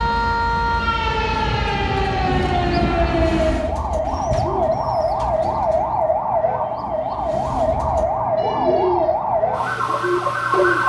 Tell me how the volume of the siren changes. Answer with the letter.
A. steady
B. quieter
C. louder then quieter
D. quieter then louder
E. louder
A.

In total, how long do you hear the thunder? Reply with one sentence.
The thunder can be heard for 2 seconds in total.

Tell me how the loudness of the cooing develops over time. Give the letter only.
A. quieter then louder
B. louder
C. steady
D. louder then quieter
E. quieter
A.